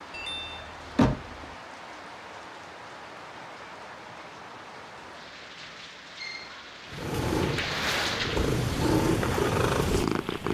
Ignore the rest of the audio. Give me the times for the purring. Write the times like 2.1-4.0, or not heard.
6.9-10.4.